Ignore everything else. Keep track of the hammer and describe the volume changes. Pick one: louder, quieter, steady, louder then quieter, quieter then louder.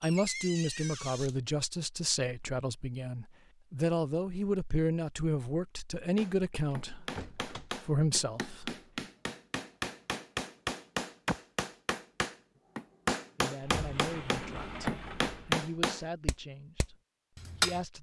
louder.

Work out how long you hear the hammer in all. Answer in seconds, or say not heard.
12 s.